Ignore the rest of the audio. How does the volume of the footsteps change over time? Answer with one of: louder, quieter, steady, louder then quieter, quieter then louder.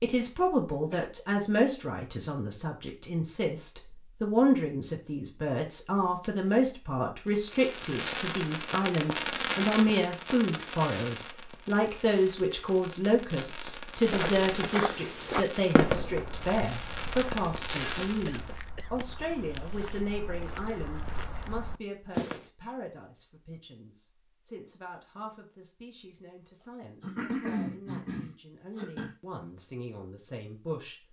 quieter then louder.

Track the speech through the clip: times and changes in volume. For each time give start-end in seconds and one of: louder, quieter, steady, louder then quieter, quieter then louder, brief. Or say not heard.
0.0-31.0 quieter.